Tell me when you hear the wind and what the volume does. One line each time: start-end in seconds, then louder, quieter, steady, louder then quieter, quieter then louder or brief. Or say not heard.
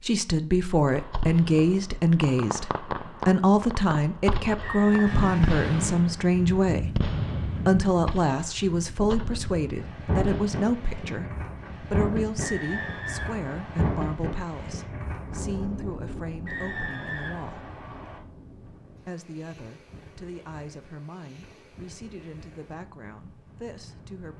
5.0-24.3 quieter.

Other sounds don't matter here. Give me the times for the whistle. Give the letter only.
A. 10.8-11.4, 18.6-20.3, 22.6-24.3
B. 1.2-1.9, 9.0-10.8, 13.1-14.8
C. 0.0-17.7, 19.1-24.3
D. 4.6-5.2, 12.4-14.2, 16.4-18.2
D.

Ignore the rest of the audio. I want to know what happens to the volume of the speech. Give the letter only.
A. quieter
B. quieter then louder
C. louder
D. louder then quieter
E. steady
A.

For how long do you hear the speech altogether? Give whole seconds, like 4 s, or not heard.
23 s.